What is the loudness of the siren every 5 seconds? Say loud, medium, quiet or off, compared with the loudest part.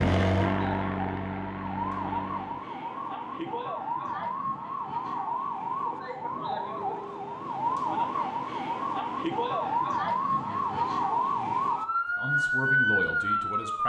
medium, loud, loud.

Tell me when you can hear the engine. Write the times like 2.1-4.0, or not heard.
0.0-2.7.